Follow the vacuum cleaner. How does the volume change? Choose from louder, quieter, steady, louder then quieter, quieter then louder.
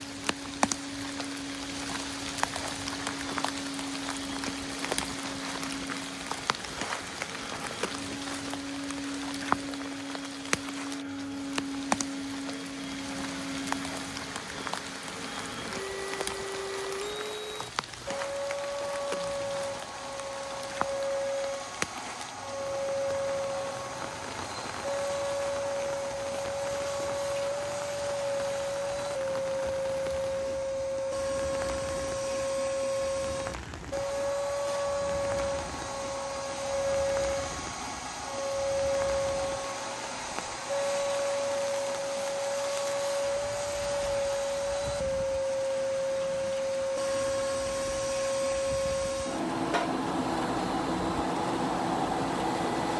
louder.